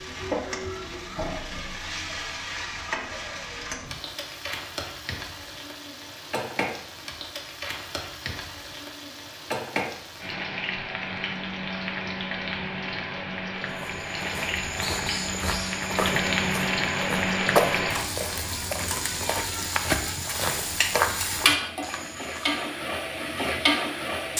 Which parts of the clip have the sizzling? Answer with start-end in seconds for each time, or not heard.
0.0-24.3.